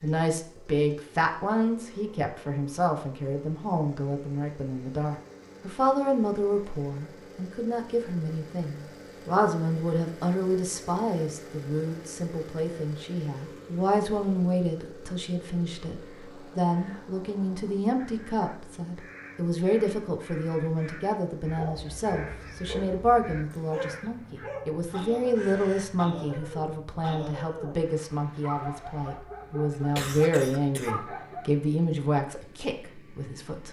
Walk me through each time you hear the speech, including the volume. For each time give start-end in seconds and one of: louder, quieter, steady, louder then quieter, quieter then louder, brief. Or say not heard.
0.0-33.6 steady.